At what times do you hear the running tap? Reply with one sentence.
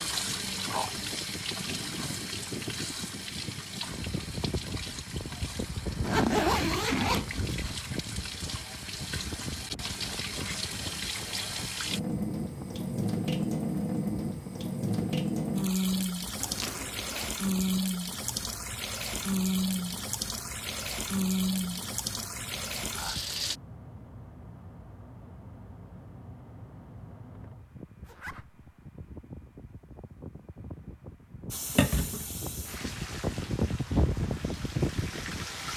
You can hear the running tap from 0.0 to 23.6 s and from 31.5 to 35.7 s.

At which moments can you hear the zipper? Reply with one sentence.
You can hear the zipper from 6.0 to 7.8 s, from 16.4 to 17.3 s and from 28.1 to 28.6 s.